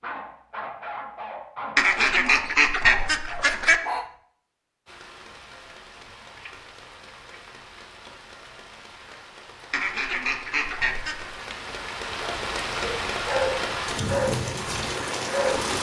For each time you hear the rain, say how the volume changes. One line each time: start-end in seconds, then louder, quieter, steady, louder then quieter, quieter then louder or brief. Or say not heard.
4.8-15.7 louder.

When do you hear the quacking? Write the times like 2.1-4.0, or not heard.
1.8-3.8, 9.7-11.4.